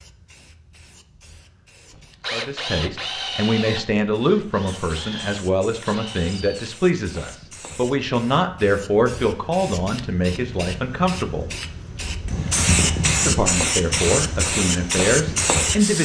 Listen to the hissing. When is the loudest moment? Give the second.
13 s.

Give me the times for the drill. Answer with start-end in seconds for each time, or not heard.
1.9-7.3.